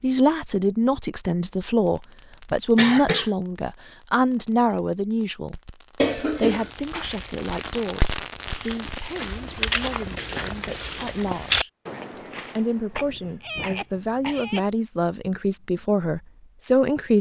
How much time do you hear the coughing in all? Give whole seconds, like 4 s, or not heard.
3 s.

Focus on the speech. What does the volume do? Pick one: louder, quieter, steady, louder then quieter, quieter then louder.
quieter then louder.